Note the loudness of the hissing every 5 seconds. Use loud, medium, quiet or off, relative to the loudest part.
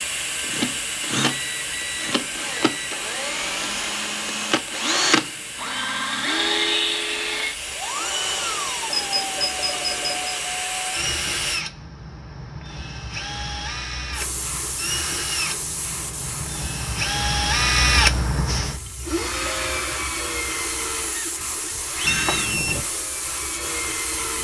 loud, loud, loud, medium, loud.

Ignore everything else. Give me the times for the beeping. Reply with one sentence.
The beeping can be heard from 1.2 to 2.9 s, from 8.9 to 10.3 s and from 22.1 to 22.8 s.